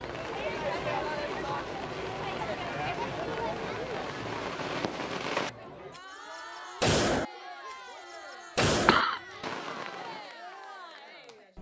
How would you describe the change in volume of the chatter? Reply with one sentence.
The volume of the chatter goes down.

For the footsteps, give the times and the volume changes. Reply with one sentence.
You can't hear the footsteps here.